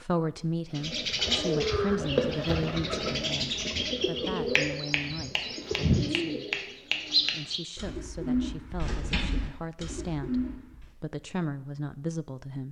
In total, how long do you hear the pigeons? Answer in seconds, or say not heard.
10 s.